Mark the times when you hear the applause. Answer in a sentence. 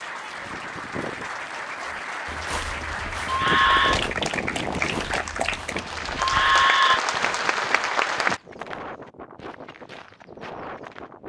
You can hear the applause from 0.0 to 8.4 s.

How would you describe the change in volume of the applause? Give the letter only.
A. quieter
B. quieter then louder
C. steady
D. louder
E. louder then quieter
D.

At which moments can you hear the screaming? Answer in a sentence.
The screaming can be heard from 3.2 to 4.0 s and from 6.2 to 7.0 s.